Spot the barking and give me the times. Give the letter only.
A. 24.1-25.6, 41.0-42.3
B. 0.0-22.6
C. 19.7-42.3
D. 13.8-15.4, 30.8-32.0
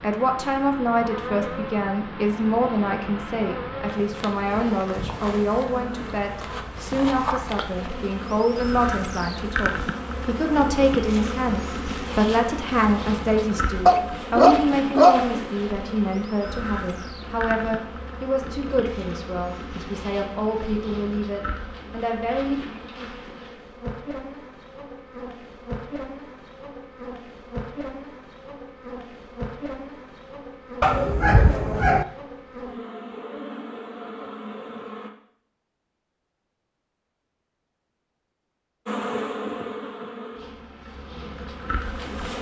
D.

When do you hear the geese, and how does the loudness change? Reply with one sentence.
You can't hear the geese here.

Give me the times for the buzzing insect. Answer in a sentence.
You can hear the buzzing insect from 0.0 to 35.1 s and from 38.9 to 42.3 s.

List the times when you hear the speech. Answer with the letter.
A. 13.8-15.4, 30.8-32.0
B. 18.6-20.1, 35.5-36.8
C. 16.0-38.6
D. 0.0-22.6
D.